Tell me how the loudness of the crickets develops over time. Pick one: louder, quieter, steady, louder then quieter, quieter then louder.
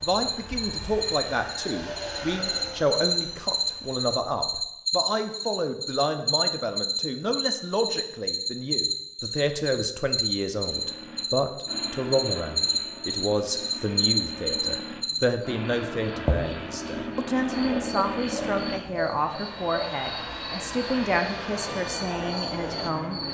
quieter.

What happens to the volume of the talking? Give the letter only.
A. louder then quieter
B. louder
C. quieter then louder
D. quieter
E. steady
E.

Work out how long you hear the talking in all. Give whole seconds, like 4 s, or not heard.
23 s.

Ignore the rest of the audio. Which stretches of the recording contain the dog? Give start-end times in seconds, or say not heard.
not heard.